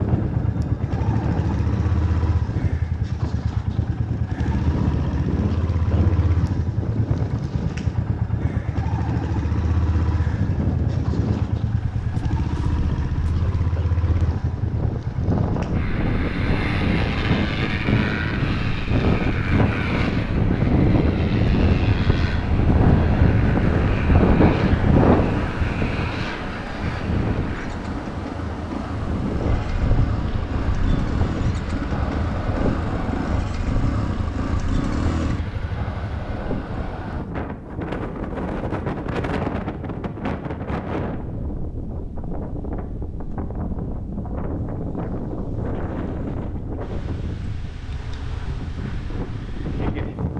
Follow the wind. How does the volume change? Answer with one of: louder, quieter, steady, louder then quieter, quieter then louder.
louder then quieter.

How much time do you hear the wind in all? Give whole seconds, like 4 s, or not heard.
50 s.